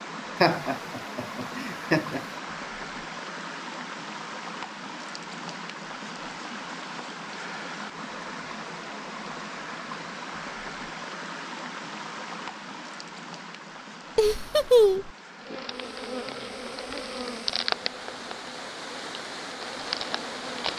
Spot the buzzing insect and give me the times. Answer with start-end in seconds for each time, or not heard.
15.3-20.7.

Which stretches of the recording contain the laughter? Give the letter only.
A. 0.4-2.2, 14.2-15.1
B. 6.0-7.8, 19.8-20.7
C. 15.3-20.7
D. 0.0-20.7
A.